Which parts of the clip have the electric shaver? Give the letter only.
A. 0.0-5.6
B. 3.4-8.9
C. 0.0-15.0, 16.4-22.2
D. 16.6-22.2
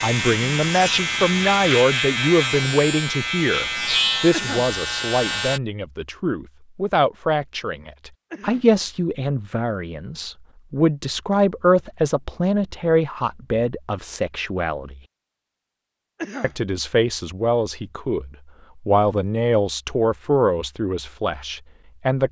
A.